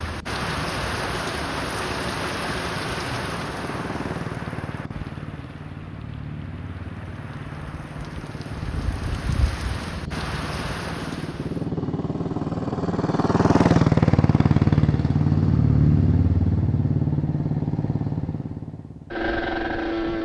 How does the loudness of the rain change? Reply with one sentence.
The volume of the rain goes down, then up.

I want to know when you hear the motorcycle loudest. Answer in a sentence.
The volume of the motorcycle peaks at 14 seconds.